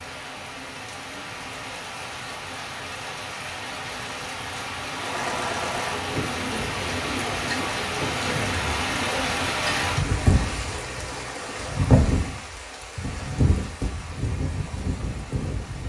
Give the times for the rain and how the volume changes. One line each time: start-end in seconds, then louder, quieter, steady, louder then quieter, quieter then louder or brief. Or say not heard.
0.0-15.8 louder then quieter.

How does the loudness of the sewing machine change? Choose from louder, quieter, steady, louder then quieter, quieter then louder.
quieter.